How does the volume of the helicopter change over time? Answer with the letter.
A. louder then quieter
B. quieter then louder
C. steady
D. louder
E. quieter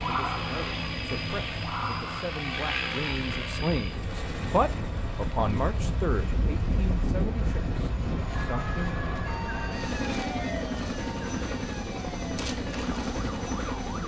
B.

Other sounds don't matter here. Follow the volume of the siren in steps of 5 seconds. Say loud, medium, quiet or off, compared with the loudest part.
loud, loud, medium.